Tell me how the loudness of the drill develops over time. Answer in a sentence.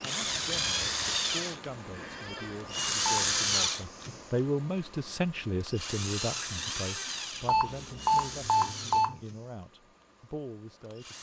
The loudness of the drill goes down.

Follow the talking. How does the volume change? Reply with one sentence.
The volume of the talking goes up, then down.